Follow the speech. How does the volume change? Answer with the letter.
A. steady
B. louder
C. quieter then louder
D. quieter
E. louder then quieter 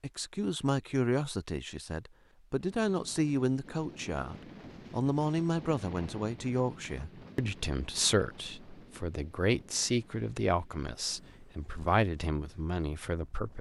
A.